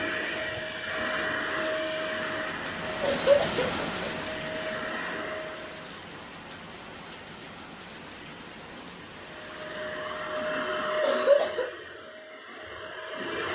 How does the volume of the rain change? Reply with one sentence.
The loudness of the rain goes up, then down.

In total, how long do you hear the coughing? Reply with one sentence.
The coughing can be heard for 2 seconds in total.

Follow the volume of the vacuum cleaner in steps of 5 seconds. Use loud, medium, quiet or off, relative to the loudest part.
loud, medium, loud.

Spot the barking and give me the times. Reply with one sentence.
The barking can't be heard in this clip.